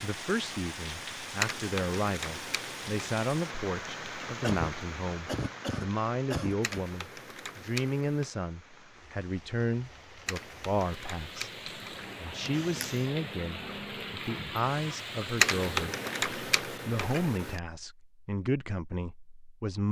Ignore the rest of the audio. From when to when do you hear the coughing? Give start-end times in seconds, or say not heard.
4.4-6.8, 12.5-13.2.